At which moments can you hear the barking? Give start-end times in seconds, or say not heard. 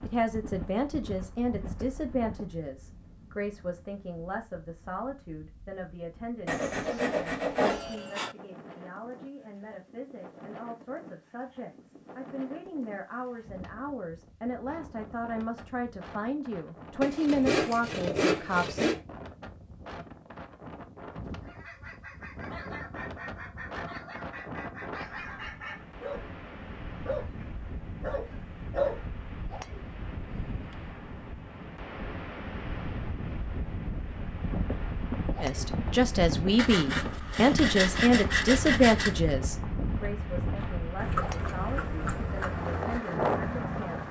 21.4-28.9.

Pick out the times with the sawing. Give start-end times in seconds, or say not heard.
6.5-8.3, 17.0-19.0, 36.5-39.2.